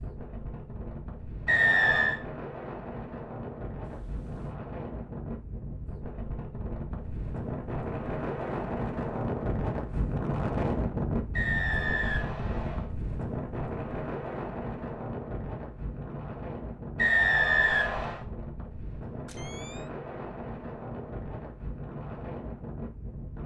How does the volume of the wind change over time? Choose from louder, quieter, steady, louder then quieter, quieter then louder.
louder then quieter.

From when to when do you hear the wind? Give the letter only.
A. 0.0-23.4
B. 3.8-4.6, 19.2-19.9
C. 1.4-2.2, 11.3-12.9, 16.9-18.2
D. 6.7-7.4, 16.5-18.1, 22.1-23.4
A.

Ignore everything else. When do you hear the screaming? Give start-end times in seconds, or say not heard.
not heard.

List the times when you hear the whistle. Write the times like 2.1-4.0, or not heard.
1.4-2.2, 11.3-12.9, 16.9-18.2.